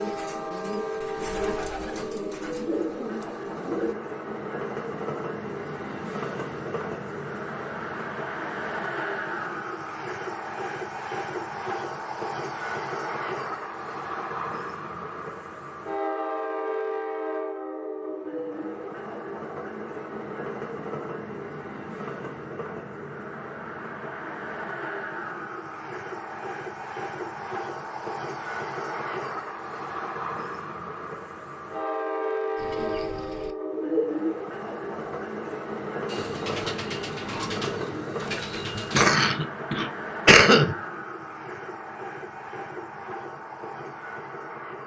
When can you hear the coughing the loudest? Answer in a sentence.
The loudest moment of the coughing is at 40 seconds.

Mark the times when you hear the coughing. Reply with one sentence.
The coughing can be heard from 38.8 to 40.8 s.